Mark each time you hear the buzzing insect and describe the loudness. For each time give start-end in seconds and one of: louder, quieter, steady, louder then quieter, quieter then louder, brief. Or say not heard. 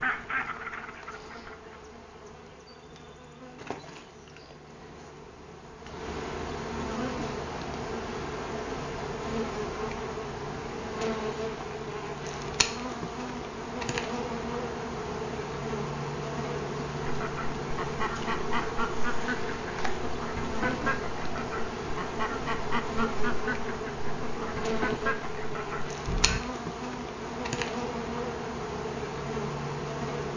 0.0-30.3 louder.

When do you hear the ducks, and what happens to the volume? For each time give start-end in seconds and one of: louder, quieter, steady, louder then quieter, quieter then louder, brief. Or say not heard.
0.0-1.8 brief
17.0-26.4 steady.